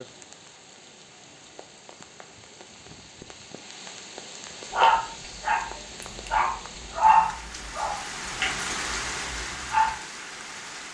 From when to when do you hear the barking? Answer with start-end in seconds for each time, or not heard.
4.7-9.9.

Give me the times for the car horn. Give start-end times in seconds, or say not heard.
not heard.